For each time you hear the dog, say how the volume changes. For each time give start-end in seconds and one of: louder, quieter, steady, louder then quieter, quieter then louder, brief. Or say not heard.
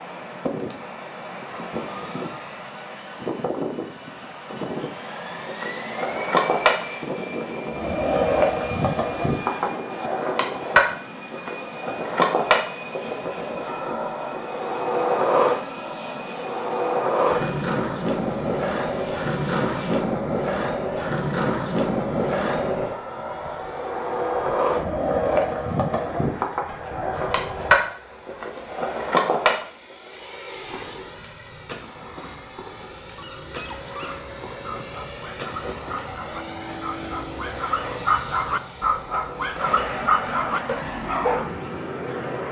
33.0-41.6 louder.